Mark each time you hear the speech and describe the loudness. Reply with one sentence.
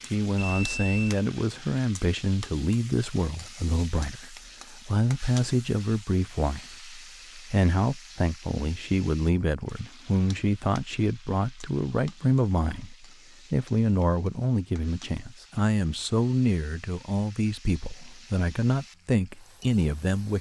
You can hear the speech from 0.1 to 20.3 s, at a steady volume.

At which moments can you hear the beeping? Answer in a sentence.
The beeping can be heard from 0.3 to 1.1 s.